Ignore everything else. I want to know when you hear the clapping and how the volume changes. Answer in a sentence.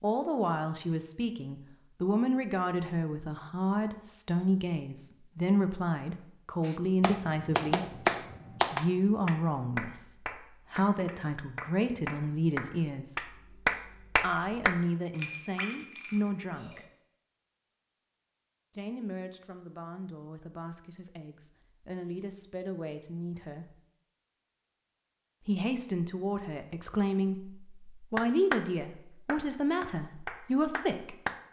You can hear the clapping from 6.7 to 14.8 s, getting quieter then louder; briefly from 28.1 to 28.6 s; and briefly from 29.2 to 31.4 s.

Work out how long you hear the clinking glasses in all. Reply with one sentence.
The clinking glasses can be heard for 2 seconds in total.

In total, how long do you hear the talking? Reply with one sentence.
The talking can be heard for 27 seconds in total.